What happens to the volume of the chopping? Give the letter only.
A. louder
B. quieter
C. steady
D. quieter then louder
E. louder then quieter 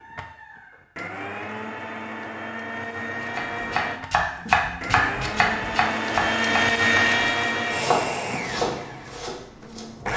B.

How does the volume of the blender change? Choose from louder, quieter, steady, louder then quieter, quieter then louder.
louder then quieter.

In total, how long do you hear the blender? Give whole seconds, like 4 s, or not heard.
10 s.